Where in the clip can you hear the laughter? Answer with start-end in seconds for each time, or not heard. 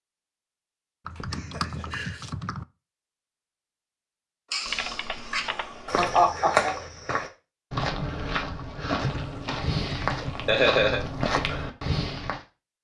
1.3-2.0, 4.5-6.8, 9.9-11.0.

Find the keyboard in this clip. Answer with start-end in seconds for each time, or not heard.
1.1-2.6, 4.7-6.3, 8.9-10.6.